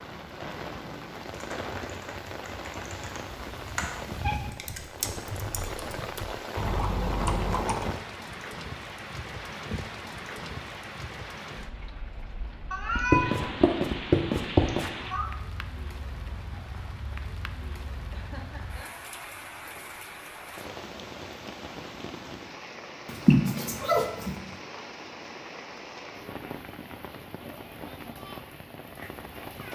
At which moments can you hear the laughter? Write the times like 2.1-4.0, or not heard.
18.1-18.9.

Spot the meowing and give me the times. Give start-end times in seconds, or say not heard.
3.3-4.6, 12.7-15.3, 23.1-24.4.